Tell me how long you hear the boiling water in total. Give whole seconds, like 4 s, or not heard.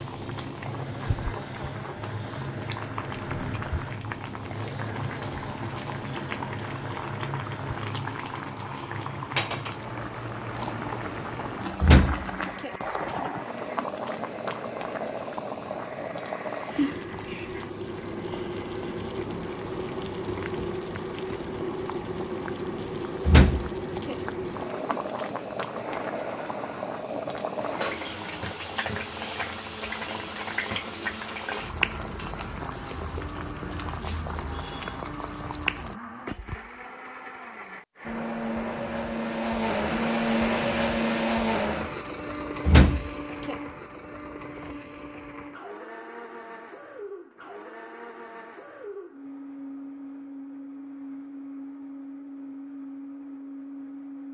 36 s.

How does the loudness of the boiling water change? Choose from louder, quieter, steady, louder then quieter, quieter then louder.
steady.